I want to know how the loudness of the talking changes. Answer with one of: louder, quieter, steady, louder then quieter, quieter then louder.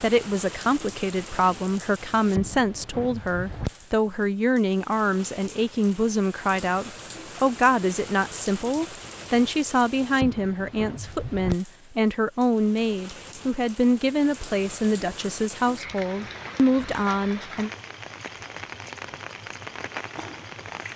steady.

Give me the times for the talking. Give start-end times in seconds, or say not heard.
0.0-17.7.